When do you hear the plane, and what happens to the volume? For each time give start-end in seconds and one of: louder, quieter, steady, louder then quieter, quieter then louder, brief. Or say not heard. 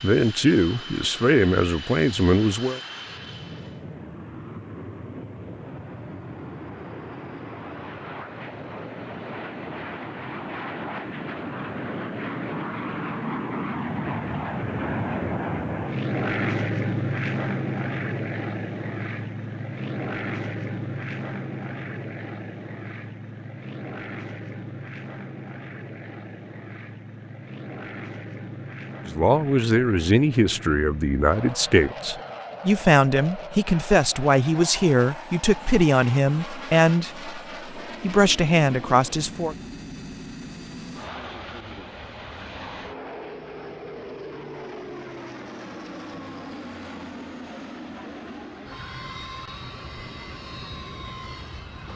0.0-51.9 louder then quieter.